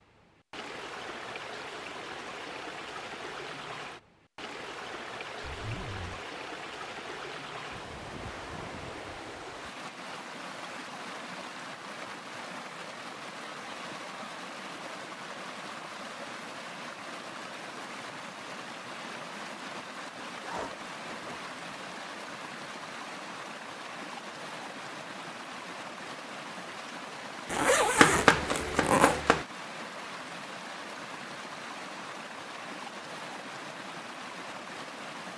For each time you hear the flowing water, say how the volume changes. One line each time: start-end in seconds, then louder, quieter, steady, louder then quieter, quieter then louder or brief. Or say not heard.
0.0-35.3 steady.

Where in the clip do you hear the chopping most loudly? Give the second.
28 s.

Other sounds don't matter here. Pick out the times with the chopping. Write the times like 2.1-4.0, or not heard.
27.9-29.4.